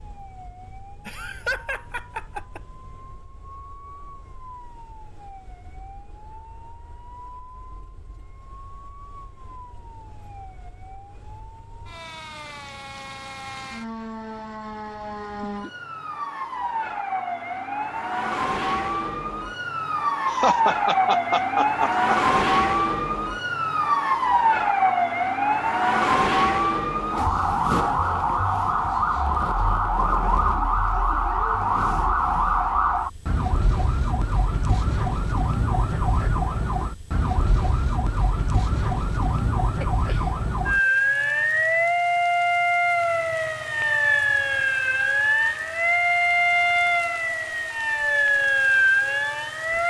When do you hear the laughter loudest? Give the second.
21 s.